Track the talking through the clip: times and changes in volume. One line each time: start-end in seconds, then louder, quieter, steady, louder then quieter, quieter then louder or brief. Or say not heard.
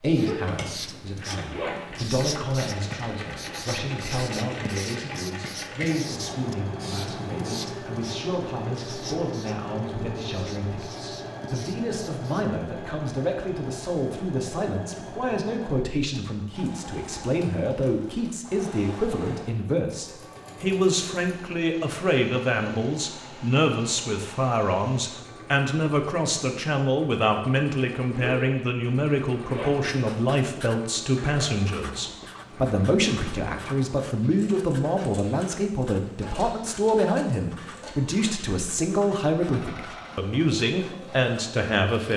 0.0-42.1 louder.